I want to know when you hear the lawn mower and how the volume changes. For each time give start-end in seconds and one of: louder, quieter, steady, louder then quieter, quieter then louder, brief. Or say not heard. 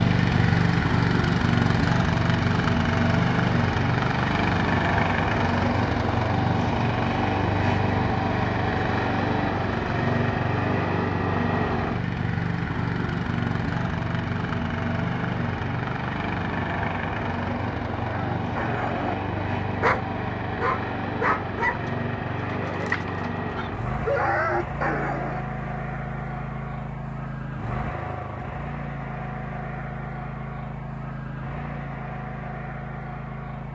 0.0-33.7 quieter.